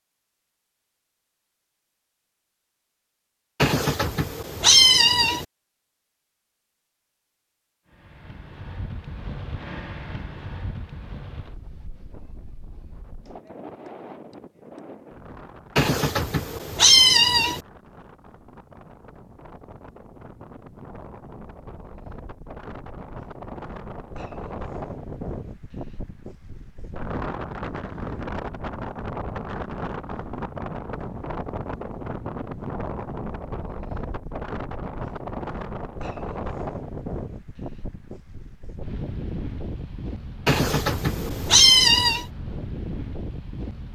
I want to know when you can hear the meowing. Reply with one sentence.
You can hear the meowing from 3.6 to 5.5 s, from 15.8 to 17.6 s and from 40.5 to 42.2 s.